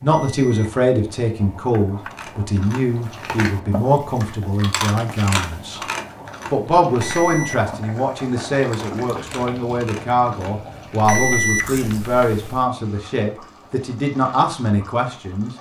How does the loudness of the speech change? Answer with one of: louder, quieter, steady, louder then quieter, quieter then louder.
steady.